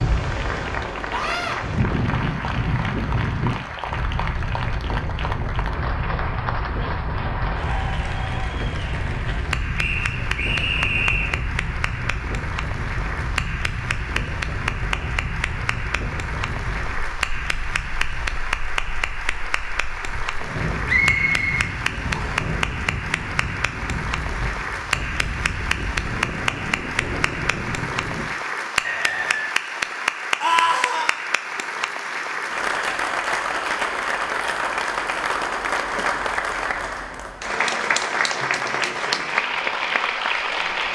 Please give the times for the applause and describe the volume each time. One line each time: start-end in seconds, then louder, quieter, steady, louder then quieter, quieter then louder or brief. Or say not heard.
0.1-40.9 louder.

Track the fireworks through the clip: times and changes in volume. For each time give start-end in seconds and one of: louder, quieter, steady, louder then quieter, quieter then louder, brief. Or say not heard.
not heard.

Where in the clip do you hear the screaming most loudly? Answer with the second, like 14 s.
31 s.